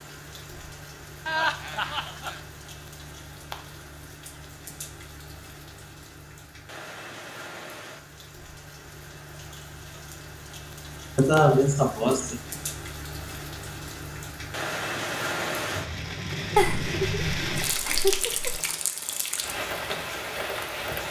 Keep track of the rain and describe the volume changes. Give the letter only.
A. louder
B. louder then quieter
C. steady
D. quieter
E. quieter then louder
A.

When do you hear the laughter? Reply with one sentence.
You can hear the laughter from 1.2 to 2.4 s, from 11.2 to 12.4 s and from 16.6 to 18.6 s.